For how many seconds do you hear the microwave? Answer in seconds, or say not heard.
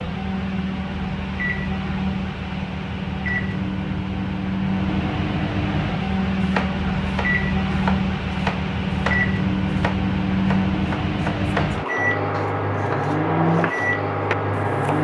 15 s.